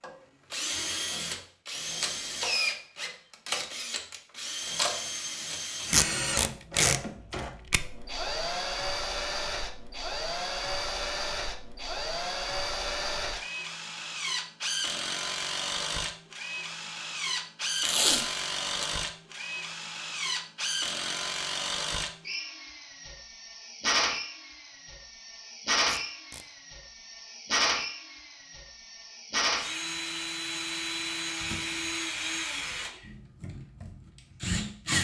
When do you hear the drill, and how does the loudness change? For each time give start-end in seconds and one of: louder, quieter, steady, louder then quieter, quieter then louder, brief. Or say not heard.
0.0-35.0 steady.